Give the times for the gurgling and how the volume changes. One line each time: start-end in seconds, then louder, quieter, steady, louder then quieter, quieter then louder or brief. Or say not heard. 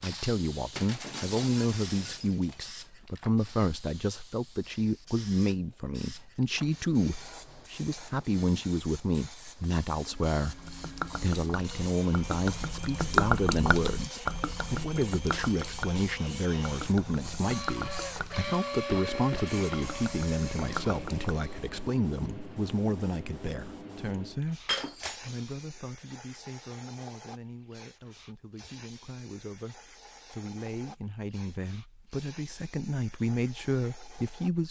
10.4-21.3 louder then quieter.